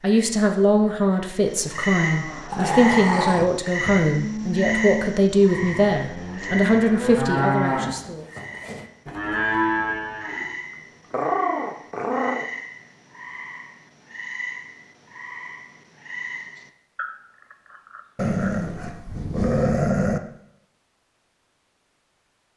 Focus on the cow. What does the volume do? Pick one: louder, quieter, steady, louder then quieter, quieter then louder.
louder.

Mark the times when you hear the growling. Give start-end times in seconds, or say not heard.
2.5-3.5, 11.1-12.4, 18.1-20.2.